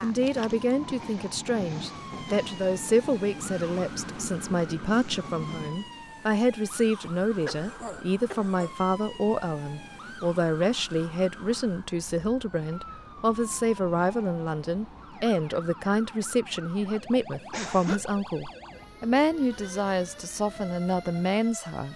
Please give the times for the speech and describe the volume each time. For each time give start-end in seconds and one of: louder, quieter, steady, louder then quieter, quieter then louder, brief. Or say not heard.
0.0-21.9 steady.